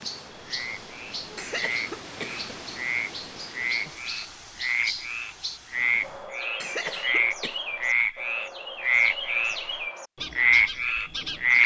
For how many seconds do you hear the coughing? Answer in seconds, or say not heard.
2 s.